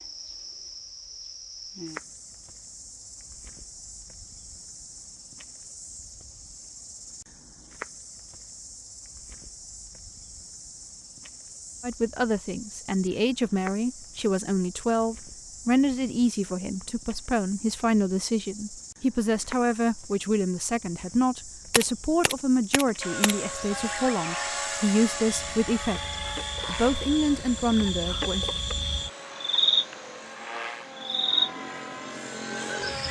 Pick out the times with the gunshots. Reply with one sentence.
The gunshots can be heard from 21.7 to 23.4 s.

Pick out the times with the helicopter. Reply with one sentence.
You can hear the helicopter from 23.0 to 33.0 s.